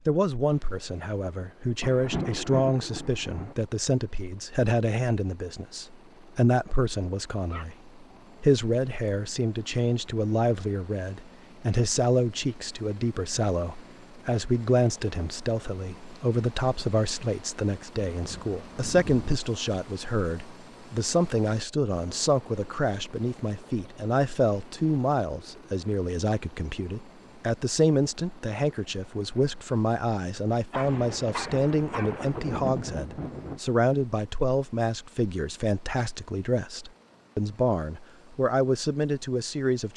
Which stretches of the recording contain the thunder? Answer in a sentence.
You can hear the thunder from 1.8 to 3.5 s, from 18.1 to 19.4 s and from 30.8 to 33.6 s.